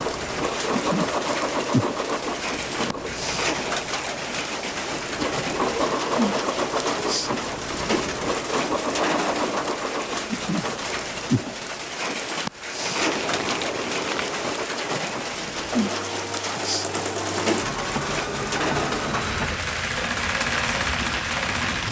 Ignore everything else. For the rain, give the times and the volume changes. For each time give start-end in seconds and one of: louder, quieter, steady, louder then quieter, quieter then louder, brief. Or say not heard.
0.0-21.8 steady.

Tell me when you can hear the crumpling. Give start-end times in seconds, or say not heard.
12.9-14.7.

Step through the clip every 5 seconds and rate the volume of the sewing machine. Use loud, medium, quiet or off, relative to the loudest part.
loud, loud, medium, loud, loud.